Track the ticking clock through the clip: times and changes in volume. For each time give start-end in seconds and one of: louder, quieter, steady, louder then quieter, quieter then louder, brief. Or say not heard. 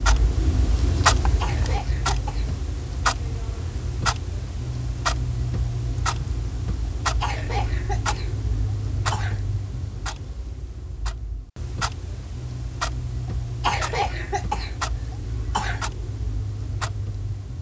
0.0-17.5 quieter.